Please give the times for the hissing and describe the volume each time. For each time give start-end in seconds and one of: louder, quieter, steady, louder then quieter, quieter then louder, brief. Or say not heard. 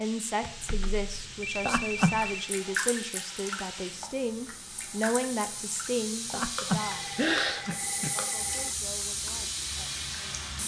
0.0-10.6 louder.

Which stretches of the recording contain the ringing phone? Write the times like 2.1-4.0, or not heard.
0.4-2.5, 6.8-8.8.